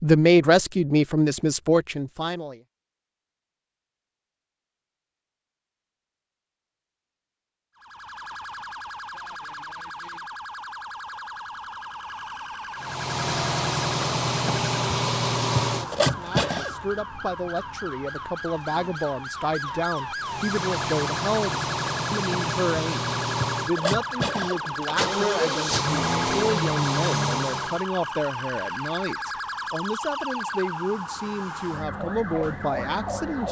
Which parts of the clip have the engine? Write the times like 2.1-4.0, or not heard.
12.8-16.8, 20.2-27.9.